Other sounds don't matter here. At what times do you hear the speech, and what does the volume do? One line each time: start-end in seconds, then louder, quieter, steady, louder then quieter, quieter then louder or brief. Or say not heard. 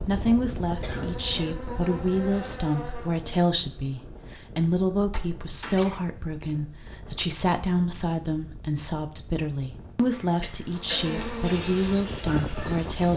0.0-13.1 steady.